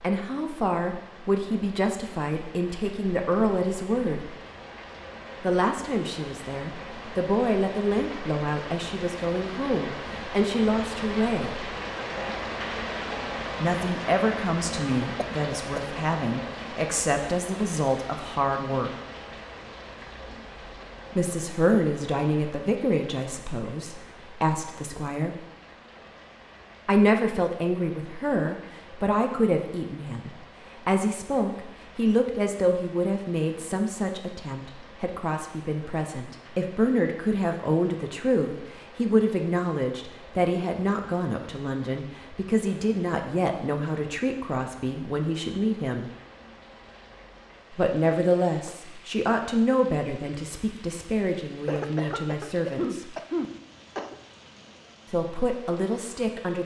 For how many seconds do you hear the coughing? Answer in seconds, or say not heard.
3 s.